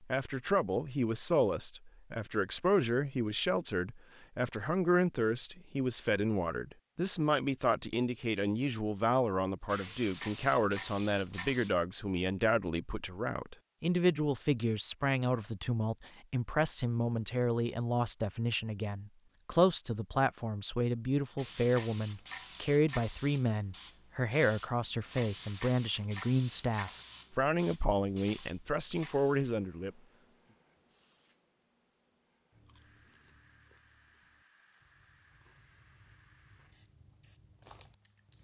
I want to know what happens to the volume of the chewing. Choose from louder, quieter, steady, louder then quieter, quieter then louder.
quieter then louder.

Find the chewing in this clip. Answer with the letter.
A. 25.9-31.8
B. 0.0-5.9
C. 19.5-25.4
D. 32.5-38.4
D.